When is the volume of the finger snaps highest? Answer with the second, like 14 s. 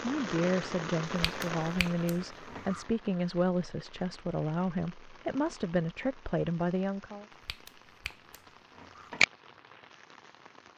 9 s.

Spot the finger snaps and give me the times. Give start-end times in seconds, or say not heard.
1.1-2.9, 7.5-9.2.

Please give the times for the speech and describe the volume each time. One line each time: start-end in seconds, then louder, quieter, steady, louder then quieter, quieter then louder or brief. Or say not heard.
0.0-7.2 steady.